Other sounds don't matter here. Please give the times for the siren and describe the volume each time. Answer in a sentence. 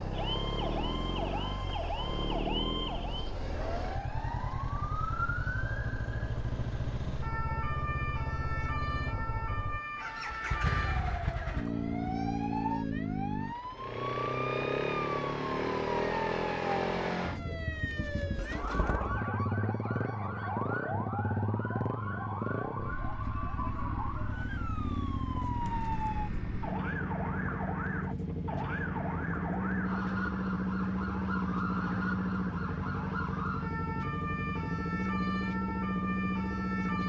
You can hear the siren from 0.1 to 37.0 s, at a steady volume.